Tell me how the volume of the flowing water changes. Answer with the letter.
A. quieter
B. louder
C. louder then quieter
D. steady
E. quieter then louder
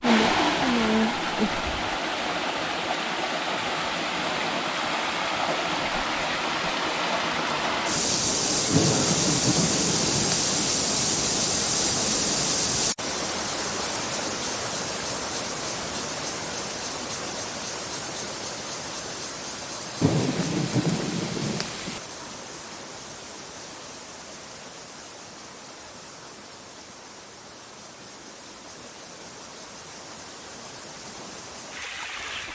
A.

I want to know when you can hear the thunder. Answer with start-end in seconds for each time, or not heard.
8.7-10.6, 20.0-22.0.